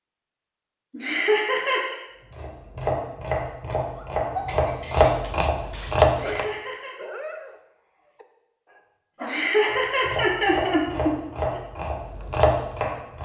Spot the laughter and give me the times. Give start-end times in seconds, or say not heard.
0.9-1.9, 6.1-7.0, 9.2-11.6.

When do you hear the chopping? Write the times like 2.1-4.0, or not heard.
2.3-6.5, 9.7-13.2.